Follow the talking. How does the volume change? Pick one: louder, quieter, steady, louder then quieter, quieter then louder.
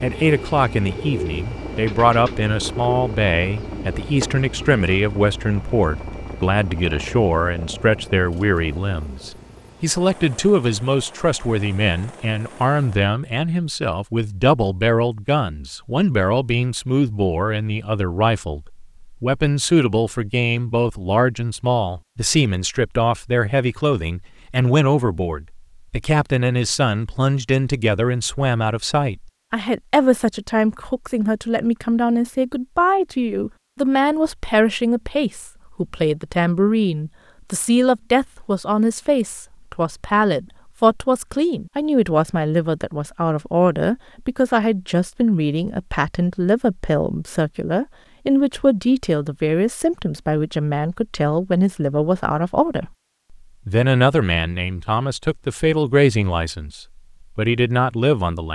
steady.